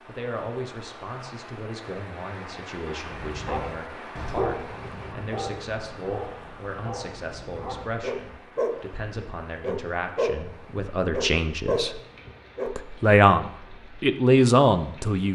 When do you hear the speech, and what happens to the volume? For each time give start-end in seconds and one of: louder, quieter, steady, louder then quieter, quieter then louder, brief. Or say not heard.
0.1-12.0 louder
12.7-15.3 brief.